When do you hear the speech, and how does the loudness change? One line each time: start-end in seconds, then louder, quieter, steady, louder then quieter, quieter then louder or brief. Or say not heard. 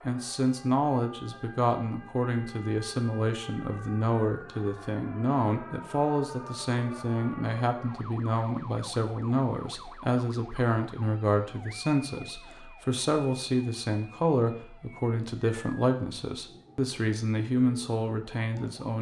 0.1-18.9 steady.